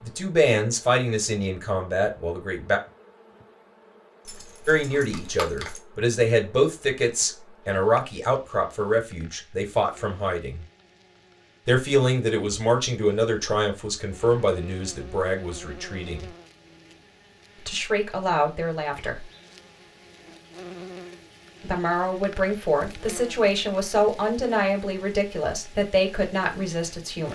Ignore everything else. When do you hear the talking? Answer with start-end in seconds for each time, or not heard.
0.0-2.8, 4.7-10.7, 11.7-16.3, 17.6-19.2, 21.6-27.3.